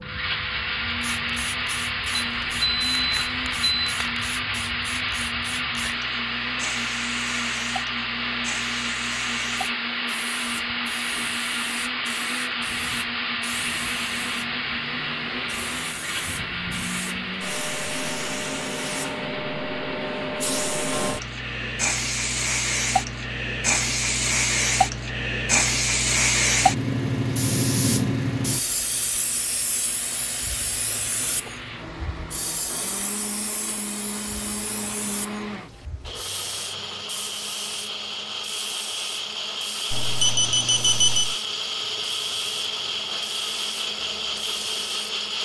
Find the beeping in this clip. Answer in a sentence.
The beeping can be heard from 2.1 to 4.0 s and from 39.9 to 41.4 s.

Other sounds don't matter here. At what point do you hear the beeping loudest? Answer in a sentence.
The loudest moment of the beeping is at 41 seconds.